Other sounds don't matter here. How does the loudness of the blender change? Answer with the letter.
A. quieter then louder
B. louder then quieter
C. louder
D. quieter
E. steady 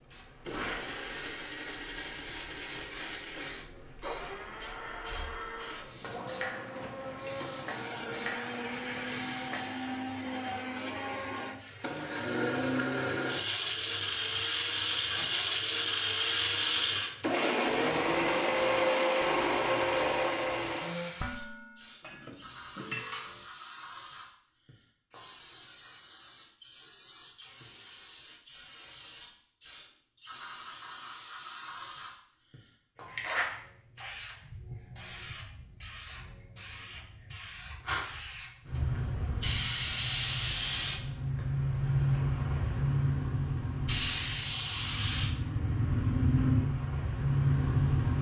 C.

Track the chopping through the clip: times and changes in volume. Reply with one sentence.
You can't hear the chopping here.